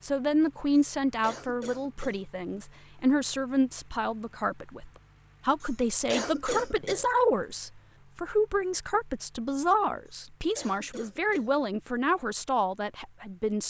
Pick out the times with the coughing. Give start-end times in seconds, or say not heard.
0.8-2.2, 5.6-7.0, 10.1-11.5.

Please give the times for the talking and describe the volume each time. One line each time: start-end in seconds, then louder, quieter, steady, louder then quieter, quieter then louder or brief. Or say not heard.
0.0-13.6 steady.